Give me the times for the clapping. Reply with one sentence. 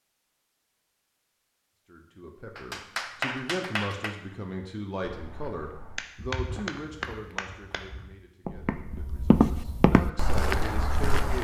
The clapping can be heard from 2.5 to 4.2 s and from 6.0 to 7.8 s.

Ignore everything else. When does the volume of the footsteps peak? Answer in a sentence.
The loudest moment of the footsteps is at 9 seconds.